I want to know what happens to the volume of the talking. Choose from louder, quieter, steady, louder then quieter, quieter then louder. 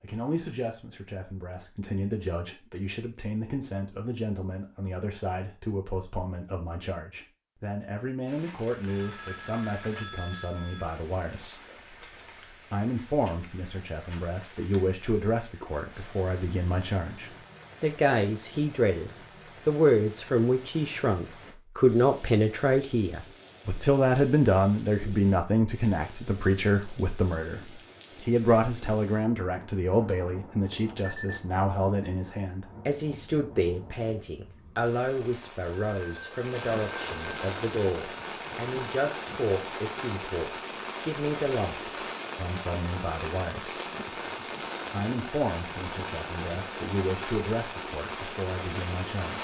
louder then quieter.